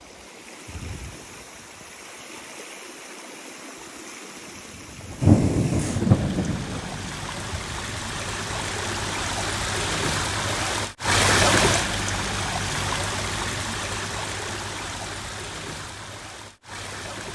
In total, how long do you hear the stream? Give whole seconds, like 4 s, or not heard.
17 s.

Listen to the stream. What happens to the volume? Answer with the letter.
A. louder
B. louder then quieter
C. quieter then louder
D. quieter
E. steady
B.